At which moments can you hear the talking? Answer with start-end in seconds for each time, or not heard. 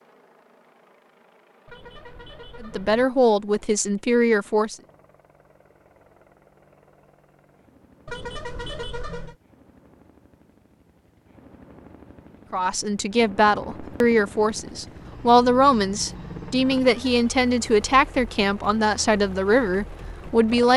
2.6-4.8, 12.5-20.7.